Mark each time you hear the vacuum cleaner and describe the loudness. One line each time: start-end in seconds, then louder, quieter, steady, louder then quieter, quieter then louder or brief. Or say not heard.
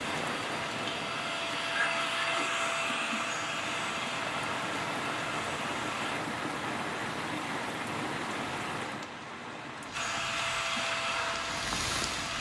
0.0-6.2 louder then quieter
9.9-12.3 brief.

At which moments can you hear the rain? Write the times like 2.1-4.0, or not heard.
0.0-12.3.